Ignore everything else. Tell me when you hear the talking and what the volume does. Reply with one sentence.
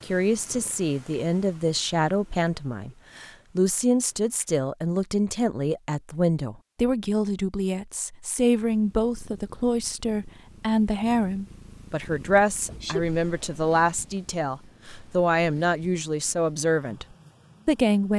You can hear the talking from 0.0 to 17.1 s, at a steady volume; and briefly from 17.6 to 18.1 s.